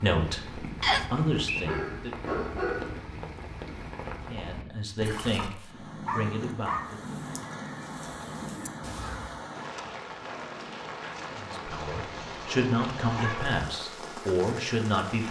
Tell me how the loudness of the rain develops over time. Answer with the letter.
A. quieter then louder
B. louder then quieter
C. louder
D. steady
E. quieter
D.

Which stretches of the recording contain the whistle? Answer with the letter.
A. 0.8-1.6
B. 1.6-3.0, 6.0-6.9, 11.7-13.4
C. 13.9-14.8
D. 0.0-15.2
A.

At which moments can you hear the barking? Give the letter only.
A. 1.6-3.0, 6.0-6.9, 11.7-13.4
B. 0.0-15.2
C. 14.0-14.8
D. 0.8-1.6
A.